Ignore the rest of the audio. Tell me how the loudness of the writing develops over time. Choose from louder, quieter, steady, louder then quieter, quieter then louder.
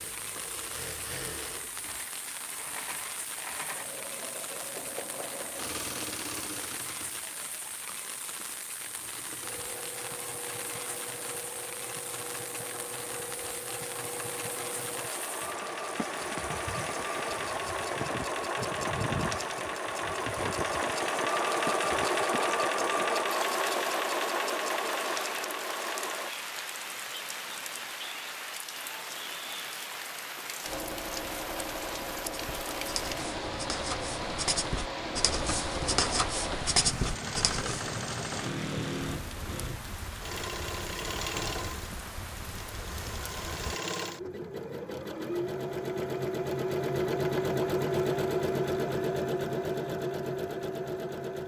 louder.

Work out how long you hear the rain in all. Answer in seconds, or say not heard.
44 s.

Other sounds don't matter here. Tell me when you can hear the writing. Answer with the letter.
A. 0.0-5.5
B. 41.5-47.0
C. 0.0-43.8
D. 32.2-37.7
D.